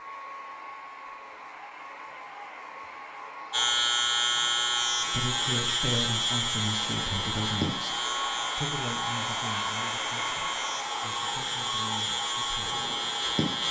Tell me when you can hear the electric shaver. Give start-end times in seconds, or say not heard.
3.5-13.6.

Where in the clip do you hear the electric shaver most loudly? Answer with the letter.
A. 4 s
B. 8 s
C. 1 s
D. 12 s
A.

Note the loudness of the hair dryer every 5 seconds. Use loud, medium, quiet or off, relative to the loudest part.
medium, loud, loud.